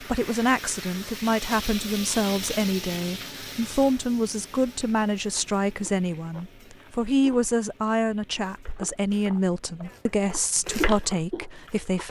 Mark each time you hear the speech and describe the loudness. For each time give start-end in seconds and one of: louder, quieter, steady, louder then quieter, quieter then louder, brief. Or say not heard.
0.0-12.0 steady.